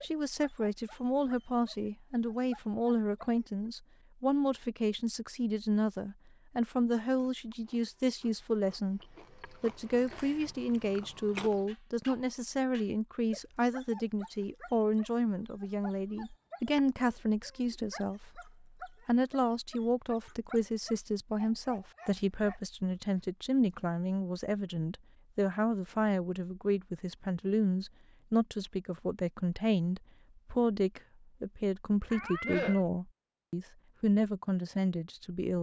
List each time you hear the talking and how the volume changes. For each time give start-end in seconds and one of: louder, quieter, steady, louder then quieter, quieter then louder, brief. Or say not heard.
0.0-35.5 steady.